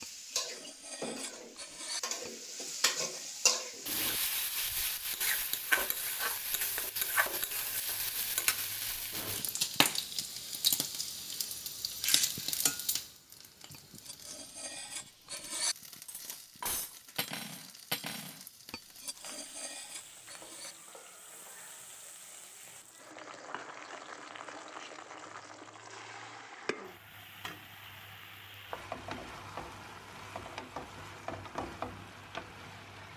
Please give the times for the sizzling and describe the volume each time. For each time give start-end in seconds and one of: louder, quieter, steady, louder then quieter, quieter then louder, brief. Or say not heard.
0.0-33.1 quieter then louder.